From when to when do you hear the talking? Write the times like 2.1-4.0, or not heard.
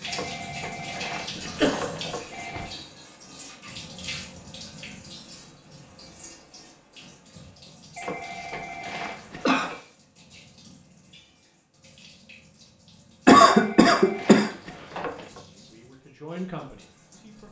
15.4-17.4.